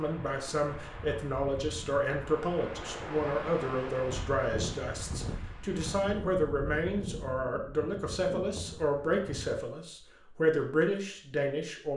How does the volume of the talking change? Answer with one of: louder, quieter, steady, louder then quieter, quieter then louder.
steady.